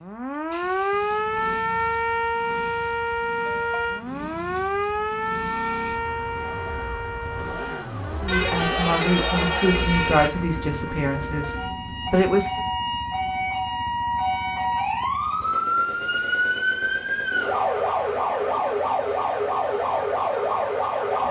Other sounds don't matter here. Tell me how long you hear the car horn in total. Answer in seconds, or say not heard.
2 s.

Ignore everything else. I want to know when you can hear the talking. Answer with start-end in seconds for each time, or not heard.
8.2-12.6.